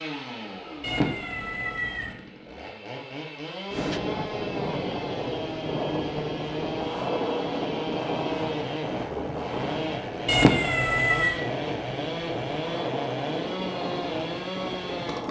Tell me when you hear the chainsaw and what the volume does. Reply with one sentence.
The chainsaw can be heard from 0.0 to 15.2 s, getting louder.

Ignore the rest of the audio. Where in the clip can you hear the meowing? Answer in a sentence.
You can hear the meowing from 0.8 to 2.1 s and from 10.2 to 11.4 s.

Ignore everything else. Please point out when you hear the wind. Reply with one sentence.
You can hear the wind from 3.7 to 15.2 s.